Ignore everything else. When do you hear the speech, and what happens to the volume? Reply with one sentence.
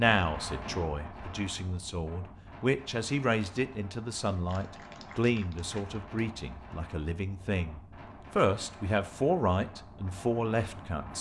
You can hear the speech from 0.0 to 11.1 s, getting louder.